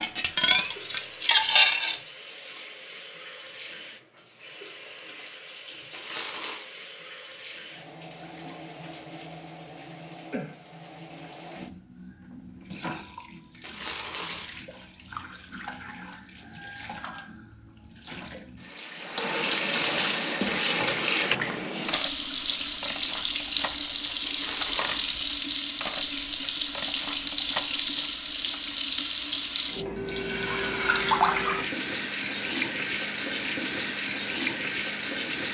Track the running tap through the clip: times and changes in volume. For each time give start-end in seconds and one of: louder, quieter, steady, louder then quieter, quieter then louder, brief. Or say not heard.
0.1-35.4 louder.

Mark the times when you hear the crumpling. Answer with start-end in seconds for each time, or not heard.
5.9-6.7, 13.6-14.5, 24.2-25.1.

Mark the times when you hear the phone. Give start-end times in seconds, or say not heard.
not heard.